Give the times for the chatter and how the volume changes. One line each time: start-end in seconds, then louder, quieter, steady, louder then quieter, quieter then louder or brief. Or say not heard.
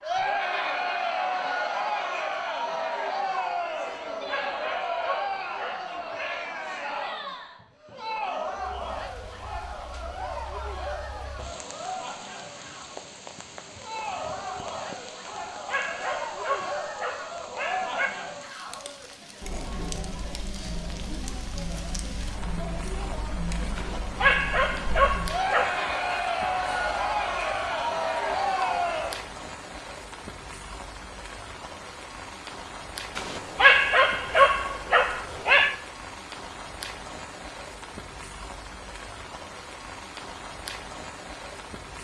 0.0-29.2 quieter then louder.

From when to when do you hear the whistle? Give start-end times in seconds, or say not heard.
not heard.